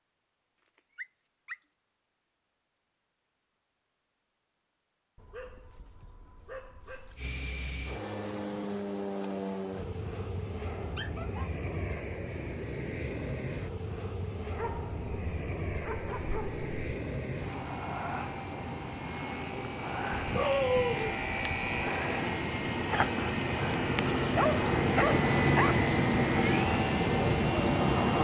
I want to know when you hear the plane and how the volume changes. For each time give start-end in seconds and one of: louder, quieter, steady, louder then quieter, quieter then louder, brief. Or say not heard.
7.2-28.1 louder.